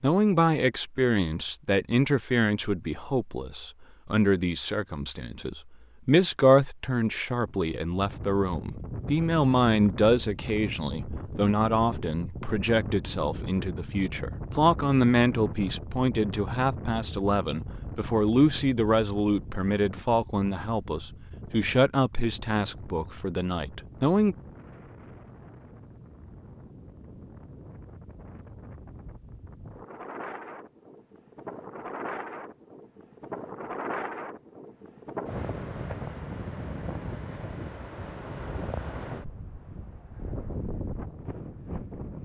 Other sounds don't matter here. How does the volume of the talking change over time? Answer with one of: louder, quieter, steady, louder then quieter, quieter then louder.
steady.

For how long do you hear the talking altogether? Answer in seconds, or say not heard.
24 s.